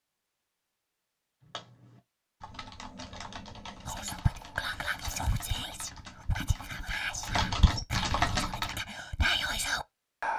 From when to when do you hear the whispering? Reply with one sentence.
The whispering can be heard from 3.9 to 10.3 s.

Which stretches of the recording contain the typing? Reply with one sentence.
The typing can be heard from 1.4 to 8.8 s.